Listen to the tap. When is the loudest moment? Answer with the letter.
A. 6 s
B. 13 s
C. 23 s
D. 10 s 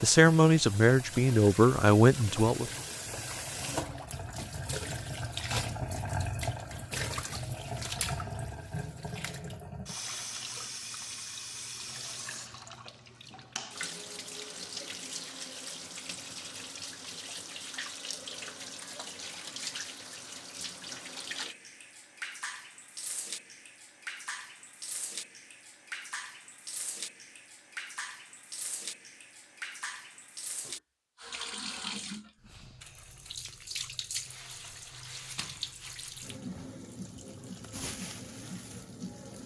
A.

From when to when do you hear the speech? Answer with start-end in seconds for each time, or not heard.
0.0-2.7.